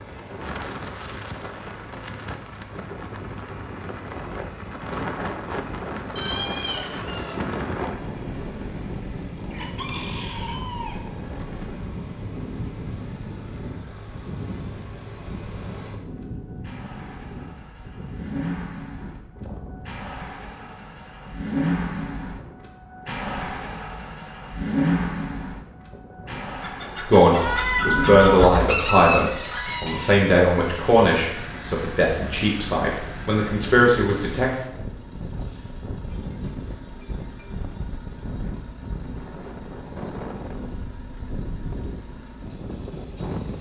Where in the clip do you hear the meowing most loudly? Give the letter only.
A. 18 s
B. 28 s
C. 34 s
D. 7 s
B.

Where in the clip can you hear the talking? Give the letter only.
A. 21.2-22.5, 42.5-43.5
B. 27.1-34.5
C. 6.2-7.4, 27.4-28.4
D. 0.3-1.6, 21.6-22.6
B.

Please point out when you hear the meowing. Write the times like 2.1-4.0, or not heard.
6.2-7.4, 27.4-28.4.